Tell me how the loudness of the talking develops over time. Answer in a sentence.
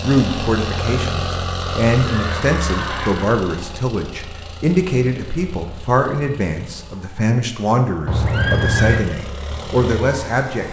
The loudness of the talking stays about the same.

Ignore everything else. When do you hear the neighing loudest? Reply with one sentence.
The loudest moment of the neighing is at 9 seconds.